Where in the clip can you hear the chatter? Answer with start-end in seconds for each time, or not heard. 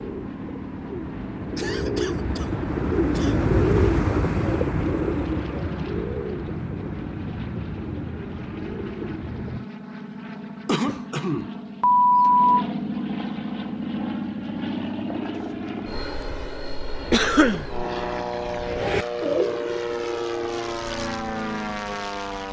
not heard.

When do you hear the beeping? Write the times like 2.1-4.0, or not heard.
11.8-12.6.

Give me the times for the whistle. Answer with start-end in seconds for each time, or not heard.
not heard.